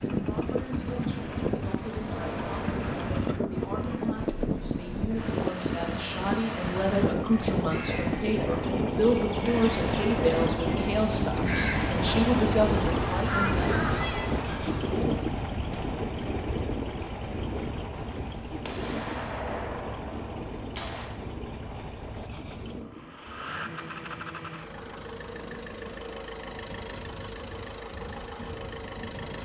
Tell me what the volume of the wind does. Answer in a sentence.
The volume of the wind goes down.